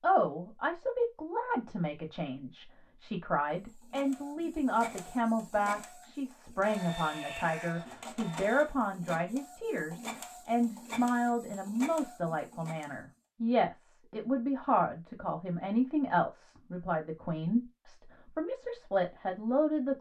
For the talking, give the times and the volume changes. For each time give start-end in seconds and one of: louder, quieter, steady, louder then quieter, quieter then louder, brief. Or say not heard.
0.0-19.9 steady.